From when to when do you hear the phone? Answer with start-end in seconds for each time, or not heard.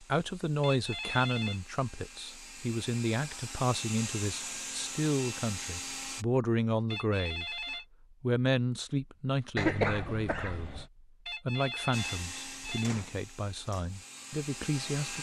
0.6-1.6, 6.9-7.8, 11.2-12.9.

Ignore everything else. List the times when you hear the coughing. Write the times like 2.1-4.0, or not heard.
9.6-10.8.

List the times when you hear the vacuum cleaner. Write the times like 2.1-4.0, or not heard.
0.0-6.2, 11.9-15.1.